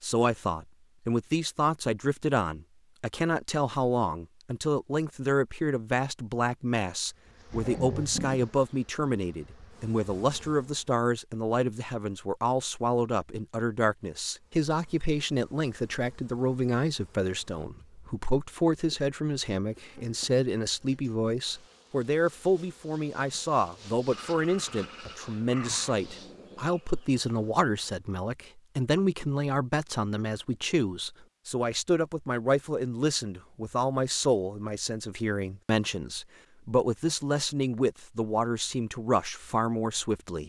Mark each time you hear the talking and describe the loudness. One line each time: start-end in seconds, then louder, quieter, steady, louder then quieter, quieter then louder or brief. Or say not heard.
0.0-40.4 steady.